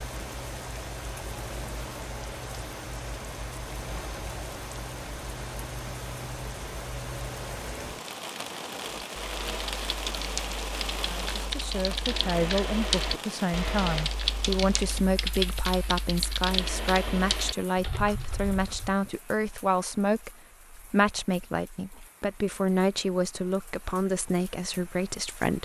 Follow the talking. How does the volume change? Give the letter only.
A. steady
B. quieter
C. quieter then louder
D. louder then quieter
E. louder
A.